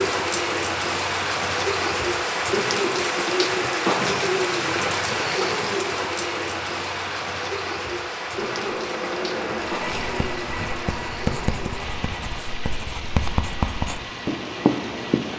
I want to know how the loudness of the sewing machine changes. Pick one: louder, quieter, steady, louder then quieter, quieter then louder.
quieter.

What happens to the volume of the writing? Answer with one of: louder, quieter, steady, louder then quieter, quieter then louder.
quieter then louder.